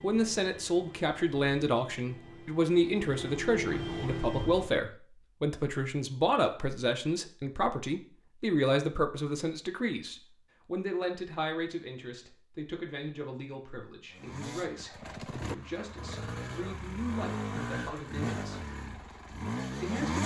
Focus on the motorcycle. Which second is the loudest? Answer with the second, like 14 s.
20 s.